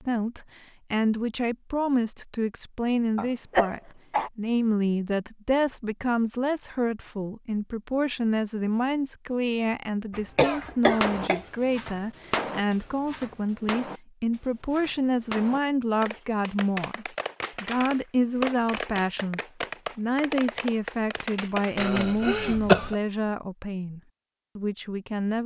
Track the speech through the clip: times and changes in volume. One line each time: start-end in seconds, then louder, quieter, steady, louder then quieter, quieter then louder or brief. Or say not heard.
0.0-25.4 steady.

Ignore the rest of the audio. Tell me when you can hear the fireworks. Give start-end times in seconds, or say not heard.
10.9-22.1.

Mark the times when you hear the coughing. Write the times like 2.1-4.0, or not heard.
3.1-4.3, 10.1-11.4, 21.8-22.9.